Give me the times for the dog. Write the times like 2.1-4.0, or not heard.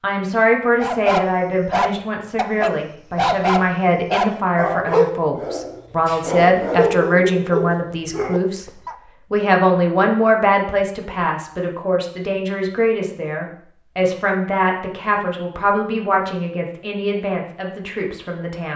0.8-8.9.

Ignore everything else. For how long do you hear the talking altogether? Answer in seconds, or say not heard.
19 s.